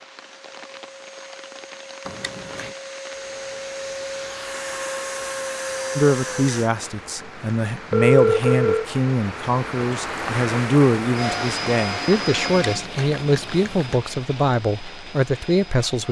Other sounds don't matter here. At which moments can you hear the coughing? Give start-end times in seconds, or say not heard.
not heard.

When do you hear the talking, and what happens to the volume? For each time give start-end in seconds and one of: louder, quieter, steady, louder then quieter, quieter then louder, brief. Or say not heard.
6.0-16.0 steady.